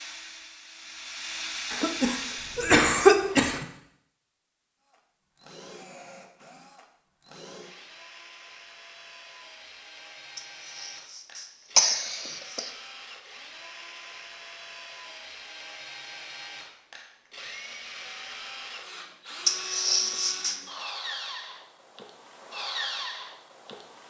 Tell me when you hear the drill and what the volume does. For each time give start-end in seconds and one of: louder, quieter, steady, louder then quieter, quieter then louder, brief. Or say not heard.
0.0-2.8 brief
4.8-24.0 louder.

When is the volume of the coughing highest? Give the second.
3 s.